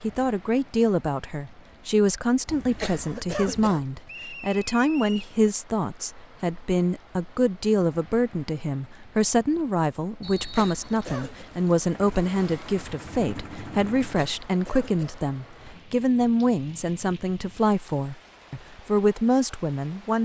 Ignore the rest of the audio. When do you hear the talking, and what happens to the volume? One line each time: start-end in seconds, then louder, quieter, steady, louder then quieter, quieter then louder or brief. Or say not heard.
0.0-20.2 steady.